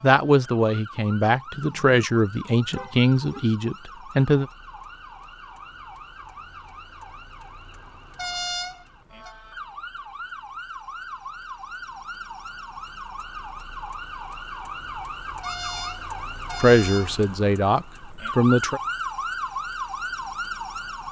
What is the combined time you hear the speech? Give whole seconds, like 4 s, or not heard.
7 s.